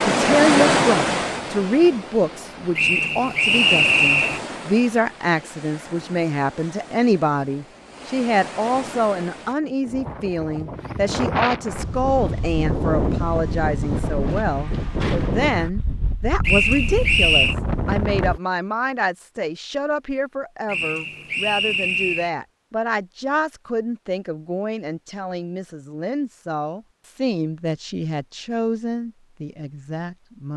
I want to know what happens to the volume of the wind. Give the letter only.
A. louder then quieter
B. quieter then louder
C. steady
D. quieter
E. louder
B.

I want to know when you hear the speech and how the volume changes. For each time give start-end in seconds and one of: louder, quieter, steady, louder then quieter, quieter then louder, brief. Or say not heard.
0.0-30.5 quieter.